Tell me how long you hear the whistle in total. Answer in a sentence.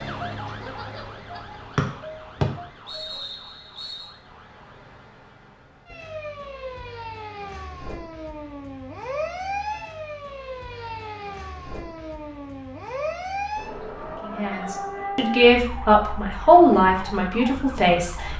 The whistle can be heard for 2 seconds in total.